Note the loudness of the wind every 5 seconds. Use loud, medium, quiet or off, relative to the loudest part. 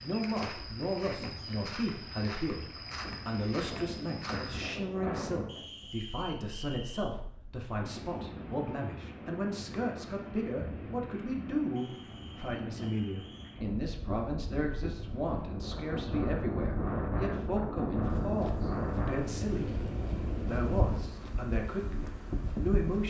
medium, medium, medium, loud, loud.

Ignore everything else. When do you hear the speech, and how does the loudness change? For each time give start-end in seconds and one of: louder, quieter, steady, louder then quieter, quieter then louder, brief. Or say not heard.
0.0-23.0 steady.